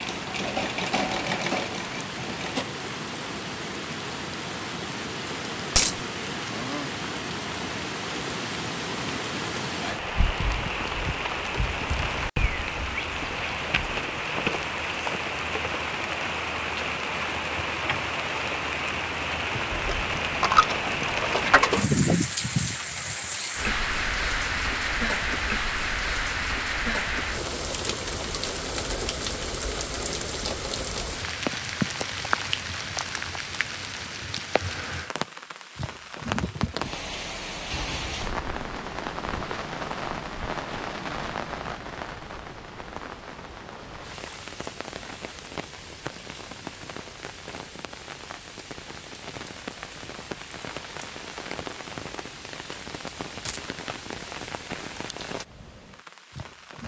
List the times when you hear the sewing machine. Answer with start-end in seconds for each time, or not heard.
0.0-2.6.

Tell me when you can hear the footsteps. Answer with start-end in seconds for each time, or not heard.
not heard.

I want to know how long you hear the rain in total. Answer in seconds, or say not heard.
57 s.